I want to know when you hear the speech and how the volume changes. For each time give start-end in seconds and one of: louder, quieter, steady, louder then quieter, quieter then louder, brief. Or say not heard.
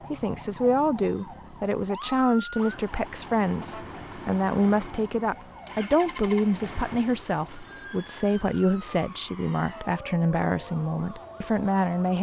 0.1-12.1 steady.